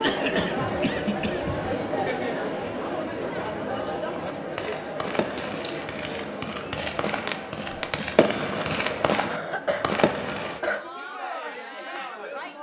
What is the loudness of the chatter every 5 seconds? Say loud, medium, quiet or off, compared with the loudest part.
loud, medium, medium.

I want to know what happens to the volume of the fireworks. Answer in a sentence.
The volume of the fireworks goes up.